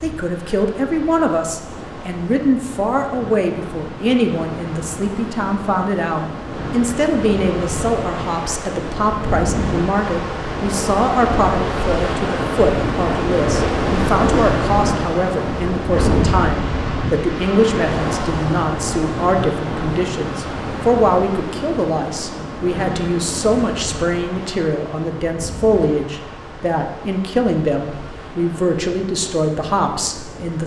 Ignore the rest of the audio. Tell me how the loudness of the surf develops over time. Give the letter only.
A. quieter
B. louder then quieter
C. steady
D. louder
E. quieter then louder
B.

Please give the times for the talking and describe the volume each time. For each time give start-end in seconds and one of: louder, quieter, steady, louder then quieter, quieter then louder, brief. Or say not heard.
0.0-30.6 steady.